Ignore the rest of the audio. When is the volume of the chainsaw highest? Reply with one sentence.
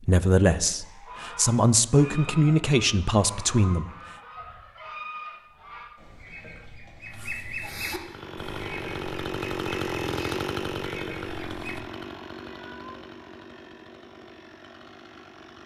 The volume of the chainsaw peaks at 10 seconds.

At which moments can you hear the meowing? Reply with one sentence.
You can hear the meowing from 12.4 to 13.1 s.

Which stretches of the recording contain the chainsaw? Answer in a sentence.
The chainsaw can be heard from 8.0 to 15.6 s.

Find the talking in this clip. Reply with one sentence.
You can hear the talking from 0.0 to 3.9 s.